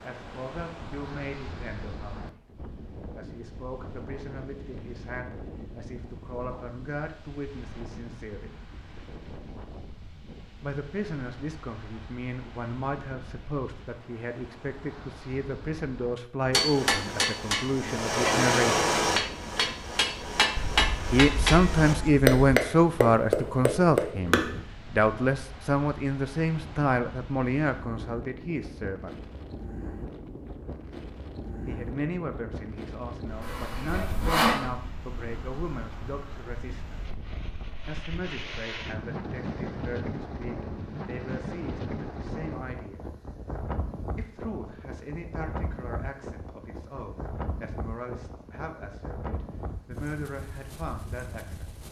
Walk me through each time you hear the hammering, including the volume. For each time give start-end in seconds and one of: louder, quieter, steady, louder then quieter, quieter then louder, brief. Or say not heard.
16.5-24.6 louder.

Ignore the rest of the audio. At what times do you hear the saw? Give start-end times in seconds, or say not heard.
33.4-34.6.